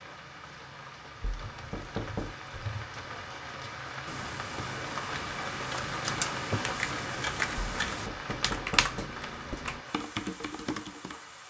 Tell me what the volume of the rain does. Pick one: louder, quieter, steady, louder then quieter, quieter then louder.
louder then quieter.